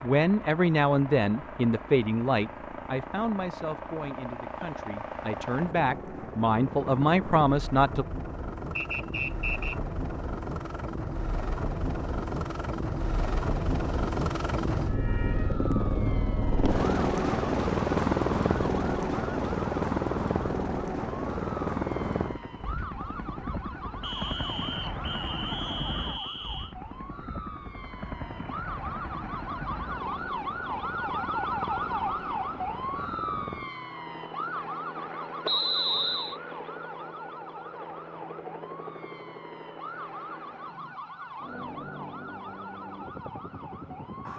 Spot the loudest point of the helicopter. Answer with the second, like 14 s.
18 s.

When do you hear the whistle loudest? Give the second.
36 s.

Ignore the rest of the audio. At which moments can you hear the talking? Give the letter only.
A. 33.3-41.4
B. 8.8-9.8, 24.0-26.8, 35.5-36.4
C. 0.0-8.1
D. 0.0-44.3
C.